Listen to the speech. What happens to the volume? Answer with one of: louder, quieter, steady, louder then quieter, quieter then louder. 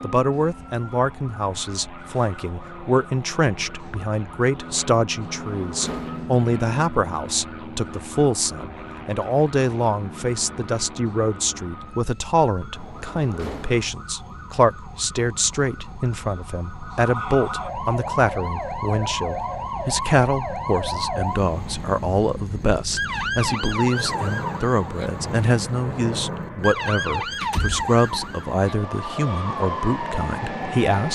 steady.